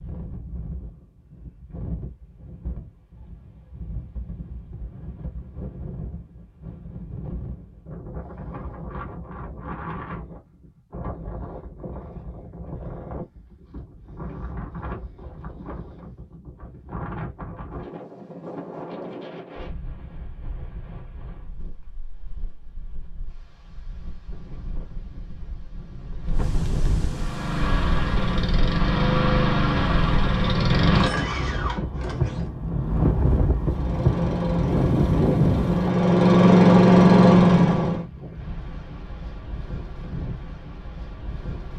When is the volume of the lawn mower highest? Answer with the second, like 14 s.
37 s.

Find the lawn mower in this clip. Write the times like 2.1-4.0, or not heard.
27.1-32.5, 33.6-38.0.